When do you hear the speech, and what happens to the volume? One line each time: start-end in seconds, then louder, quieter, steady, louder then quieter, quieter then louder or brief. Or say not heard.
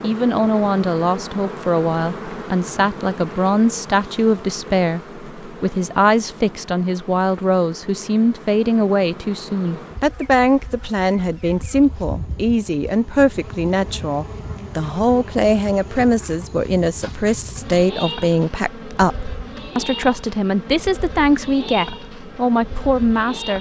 0.0-23.5 steady.